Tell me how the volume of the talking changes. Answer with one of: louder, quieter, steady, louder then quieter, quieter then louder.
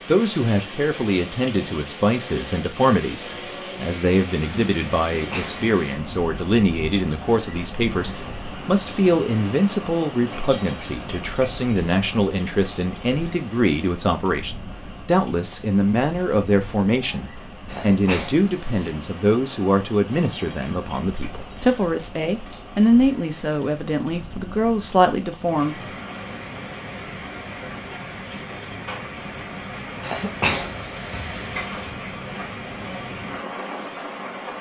steady.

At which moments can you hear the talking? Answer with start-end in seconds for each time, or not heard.
0.1-25.8.